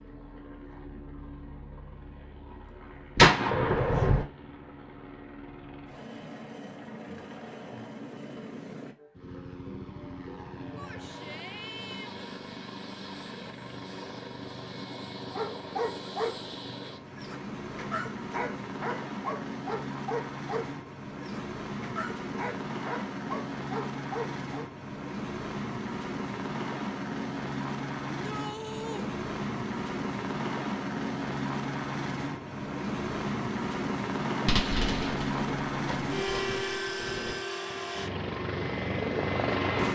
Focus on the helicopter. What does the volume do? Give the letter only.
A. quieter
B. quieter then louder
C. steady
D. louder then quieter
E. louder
E.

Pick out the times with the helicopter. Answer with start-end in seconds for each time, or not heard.
0.0-39.9.